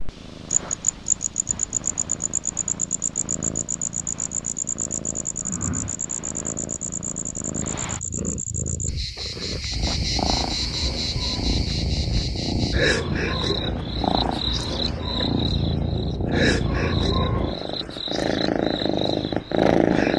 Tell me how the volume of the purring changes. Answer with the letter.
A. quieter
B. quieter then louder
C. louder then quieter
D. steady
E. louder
E.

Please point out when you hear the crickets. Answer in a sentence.
You can hear the crickets from 0.0 to 20.1 s.